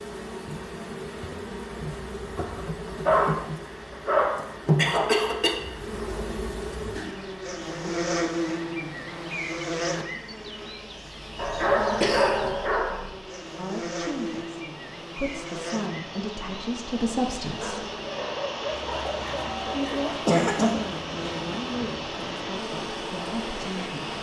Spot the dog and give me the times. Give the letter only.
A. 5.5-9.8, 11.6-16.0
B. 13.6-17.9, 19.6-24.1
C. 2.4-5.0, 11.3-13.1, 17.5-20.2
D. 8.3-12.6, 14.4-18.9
C.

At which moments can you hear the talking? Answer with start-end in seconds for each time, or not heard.
13.6-17.9, 19.6-24.1.